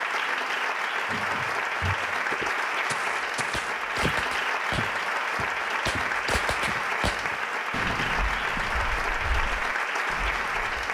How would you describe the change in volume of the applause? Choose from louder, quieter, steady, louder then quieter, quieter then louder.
steady.